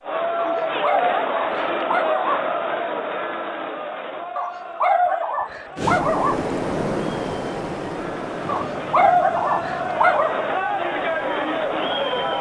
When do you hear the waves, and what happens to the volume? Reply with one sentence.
The waves can be heard from 5.8 to 12.3 s, getting quieter.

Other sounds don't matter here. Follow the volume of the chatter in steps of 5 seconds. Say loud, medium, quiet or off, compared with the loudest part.
loud, medium, loud.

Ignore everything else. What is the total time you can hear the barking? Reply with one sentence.
The barking can be heard for 6 seconds in total.